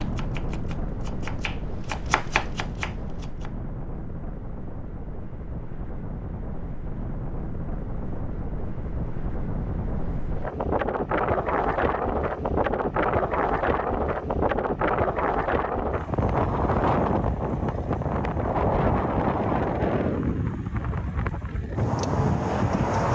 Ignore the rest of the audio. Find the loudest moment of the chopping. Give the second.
2 s.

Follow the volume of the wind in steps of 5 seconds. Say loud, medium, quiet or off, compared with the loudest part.
medium, medium, loud, loud, loud.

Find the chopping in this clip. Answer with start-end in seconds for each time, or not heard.
0.0-3.5.